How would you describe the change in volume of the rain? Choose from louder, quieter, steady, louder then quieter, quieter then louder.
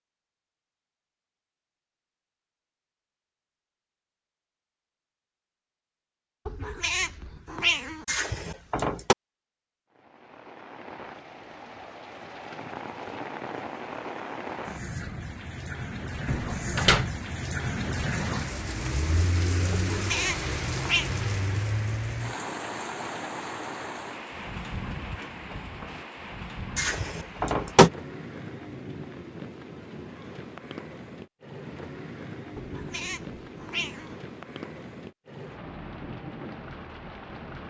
louder then quieter.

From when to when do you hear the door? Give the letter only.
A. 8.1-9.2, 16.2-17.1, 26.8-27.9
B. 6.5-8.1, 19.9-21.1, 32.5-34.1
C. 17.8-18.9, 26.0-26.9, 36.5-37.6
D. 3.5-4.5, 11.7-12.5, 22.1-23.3
A.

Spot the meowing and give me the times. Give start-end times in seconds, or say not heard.
6.5-8.1, 19.9-21.1, 32.5-34.1.